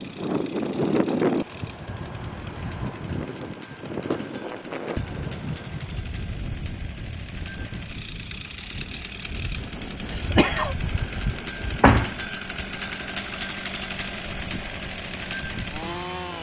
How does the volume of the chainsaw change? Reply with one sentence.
The volume of the chainsaw goes up.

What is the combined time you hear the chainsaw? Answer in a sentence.
You can hear the chainsaw for 16 seconds altogether.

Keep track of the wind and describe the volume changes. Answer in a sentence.
The loudness of the wind goes down.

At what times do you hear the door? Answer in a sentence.
The door can be heard from 11.8 to 12.7 s.